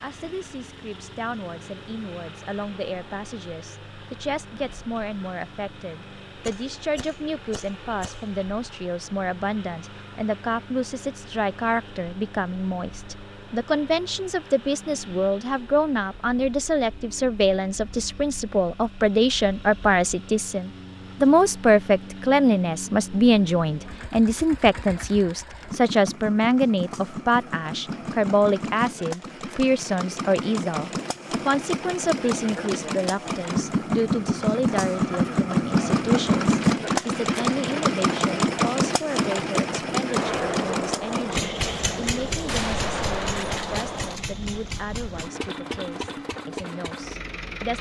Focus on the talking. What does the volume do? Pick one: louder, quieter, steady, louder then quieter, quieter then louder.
louder then quieter.